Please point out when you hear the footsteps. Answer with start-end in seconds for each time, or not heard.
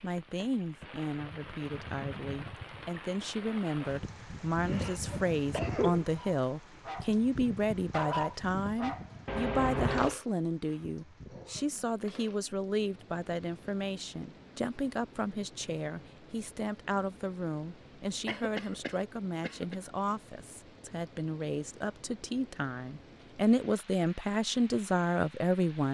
not heard.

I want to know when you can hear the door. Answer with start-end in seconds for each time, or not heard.
not heard.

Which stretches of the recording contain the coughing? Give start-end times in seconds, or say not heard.
4.7-6.0, 9.2-10.2, 18.2-19.8.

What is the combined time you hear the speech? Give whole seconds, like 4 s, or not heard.
26 s.